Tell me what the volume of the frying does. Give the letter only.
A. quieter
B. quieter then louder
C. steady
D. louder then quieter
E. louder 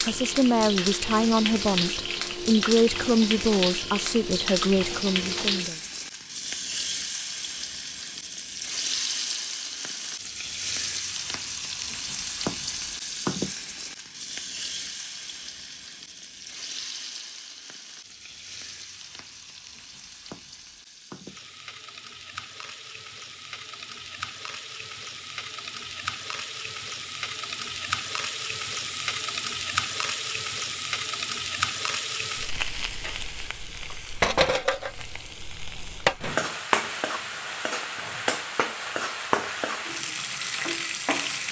B.